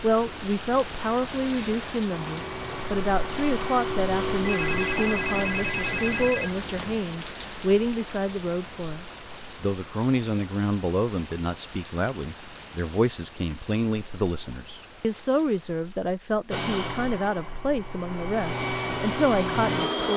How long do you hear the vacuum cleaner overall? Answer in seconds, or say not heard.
8 s.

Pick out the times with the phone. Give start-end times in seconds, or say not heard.
4.3-7.0.